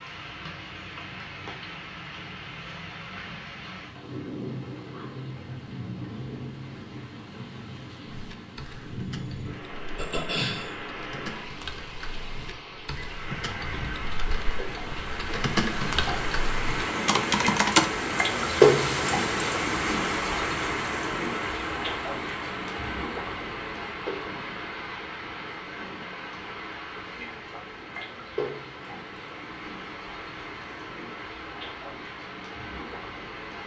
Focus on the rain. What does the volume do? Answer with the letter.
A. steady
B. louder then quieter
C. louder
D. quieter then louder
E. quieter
B.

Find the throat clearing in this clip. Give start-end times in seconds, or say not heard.
9.9-10.8.